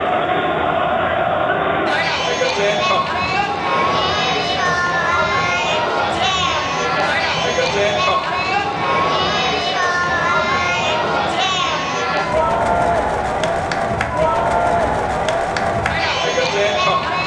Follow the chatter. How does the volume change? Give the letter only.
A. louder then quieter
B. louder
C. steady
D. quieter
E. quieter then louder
C.